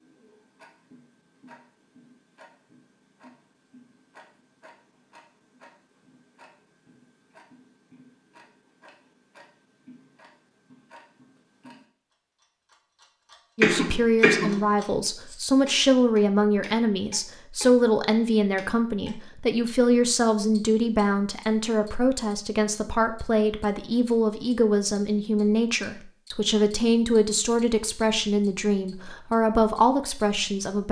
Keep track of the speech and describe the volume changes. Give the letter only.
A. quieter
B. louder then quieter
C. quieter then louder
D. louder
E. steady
E.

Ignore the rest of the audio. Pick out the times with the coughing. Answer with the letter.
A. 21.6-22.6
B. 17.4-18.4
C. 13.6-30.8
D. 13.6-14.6
D.